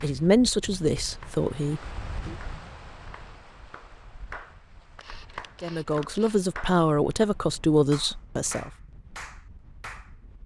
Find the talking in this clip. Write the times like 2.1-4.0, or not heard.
0.0-2.4, 5.6-8.7.